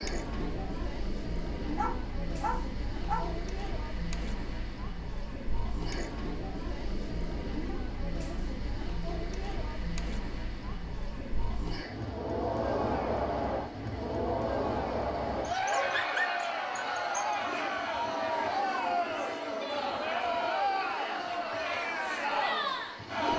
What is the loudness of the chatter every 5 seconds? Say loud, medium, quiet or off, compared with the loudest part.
medium, medium, loud, loud, loud.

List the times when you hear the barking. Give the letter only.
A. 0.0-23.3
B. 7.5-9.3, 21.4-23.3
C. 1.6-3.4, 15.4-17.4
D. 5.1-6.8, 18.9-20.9
C.